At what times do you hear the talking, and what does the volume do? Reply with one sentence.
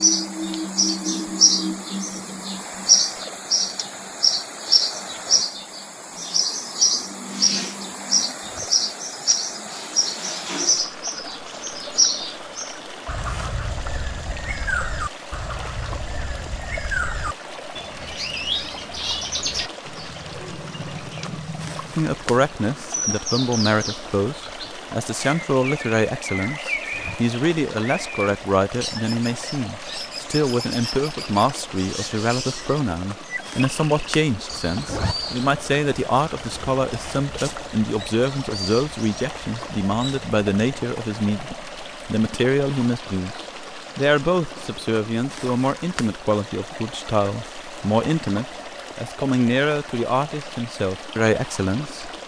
The talking can be heard from 21.9 to 52.1 s, at a steady volume.